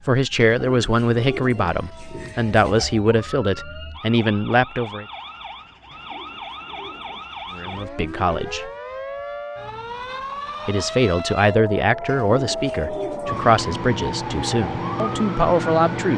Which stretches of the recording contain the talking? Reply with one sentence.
The talking can be heard from 0.1 to 5.0 s, from 7.5 to 8.7 s and from 10.7 to 16.1 s.